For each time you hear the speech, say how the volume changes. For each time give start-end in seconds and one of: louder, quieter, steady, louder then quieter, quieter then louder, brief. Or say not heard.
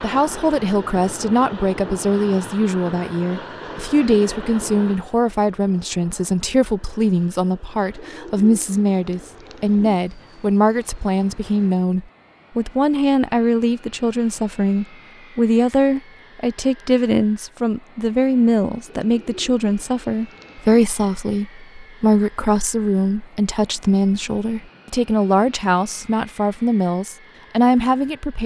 0.0-28.4 steady.